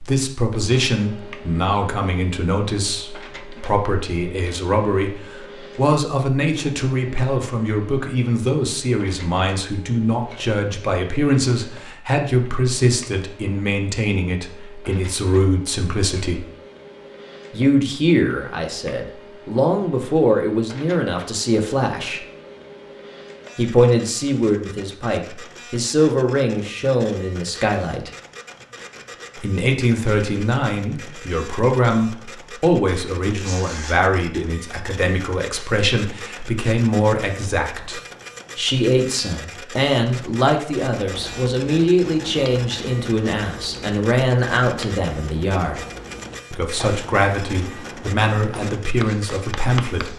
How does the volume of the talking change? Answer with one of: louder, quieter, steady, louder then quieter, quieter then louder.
steady.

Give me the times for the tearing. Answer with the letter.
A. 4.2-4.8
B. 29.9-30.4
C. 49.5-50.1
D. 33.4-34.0
D.